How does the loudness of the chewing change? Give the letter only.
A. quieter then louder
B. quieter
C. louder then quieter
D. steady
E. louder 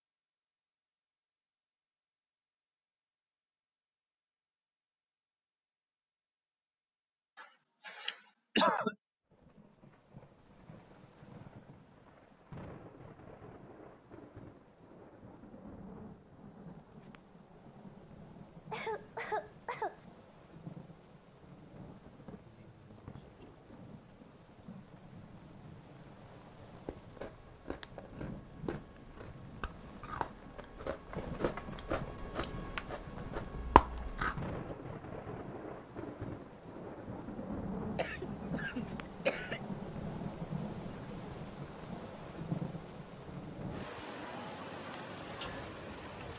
E.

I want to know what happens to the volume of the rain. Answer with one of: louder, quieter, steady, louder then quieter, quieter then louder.
louder.